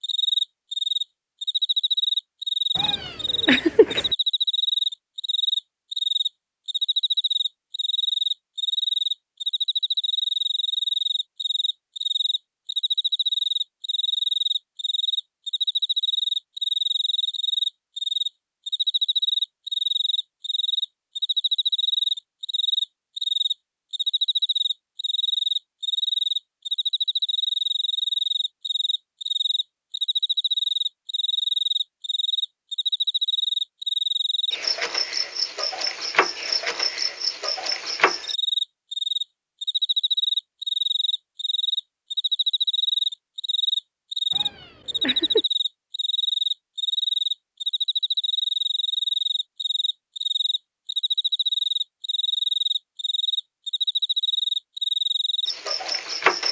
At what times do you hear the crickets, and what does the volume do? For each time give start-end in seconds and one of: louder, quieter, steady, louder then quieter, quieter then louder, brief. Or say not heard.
0.0-56.4 steady.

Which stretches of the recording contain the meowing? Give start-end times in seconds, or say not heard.
2.8-4.0, 44.3-45.5.